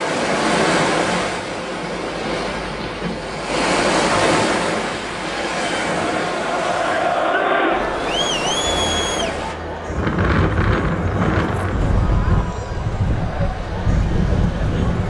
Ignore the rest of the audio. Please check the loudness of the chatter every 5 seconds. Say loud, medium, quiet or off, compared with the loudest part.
off, loud, medium.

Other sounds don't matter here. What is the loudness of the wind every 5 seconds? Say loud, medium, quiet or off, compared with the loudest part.
loud, medium, loud.